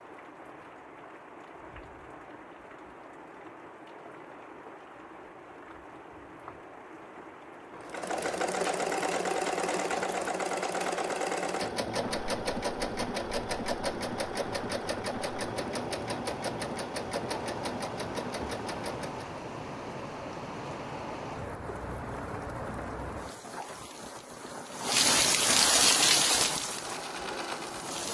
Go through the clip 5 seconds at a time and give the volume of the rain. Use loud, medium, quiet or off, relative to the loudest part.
quiet, quiet, quiet, quiet, medium, loud.